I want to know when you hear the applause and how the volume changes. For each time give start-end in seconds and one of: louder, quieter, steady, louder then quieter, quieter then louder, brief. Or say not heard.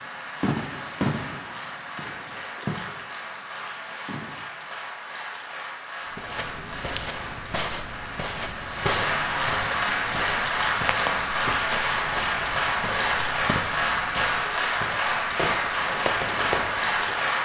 0.0-17.4 louder.